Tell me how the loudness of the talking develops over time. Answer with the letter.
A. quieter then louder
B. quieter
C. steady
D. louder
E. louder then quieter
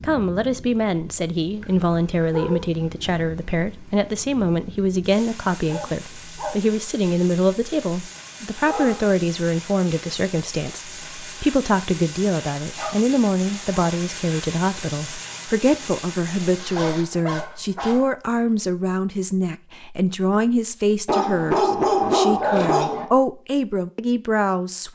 C.